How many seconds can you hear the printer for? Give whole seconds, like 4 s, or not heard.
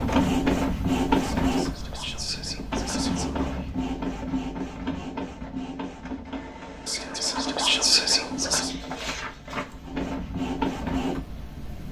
12 s.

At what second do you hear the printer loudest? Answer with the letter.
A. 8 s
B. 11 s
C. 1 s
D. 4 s
C.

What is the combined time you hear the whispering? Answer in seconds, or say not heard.
4 s.